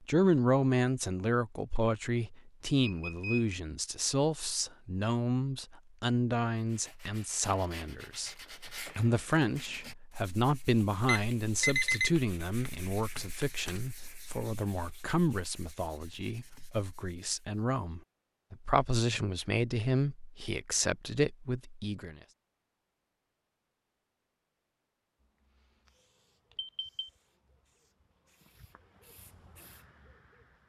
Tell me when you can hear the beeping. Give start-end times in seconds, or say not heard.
2.7-3.5, 11.1-12.1, 26.6-27.1.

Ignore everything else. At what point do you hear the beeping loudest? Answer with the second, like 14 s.
12 s.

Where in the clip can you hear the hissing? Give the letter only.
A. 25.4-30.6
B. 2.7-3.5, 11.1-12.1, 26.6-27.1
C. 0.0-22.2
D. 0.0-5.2
A.